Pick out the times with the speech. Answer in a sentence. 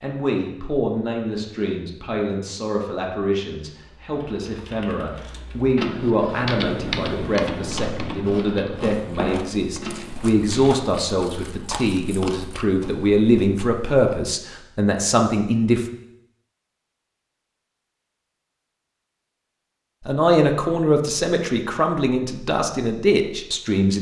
The speech can be heard from 0.0 to 15.8 s and from 20.1 to 23.9 s.